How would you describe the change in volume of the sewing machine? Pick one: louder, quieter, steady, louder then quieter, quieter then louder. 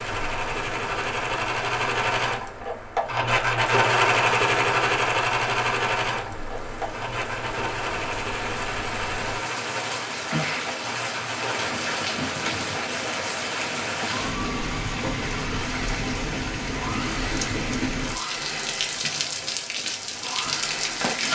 quieter.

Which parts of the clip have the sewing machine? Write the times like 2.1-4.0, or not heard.
0.0-21.2.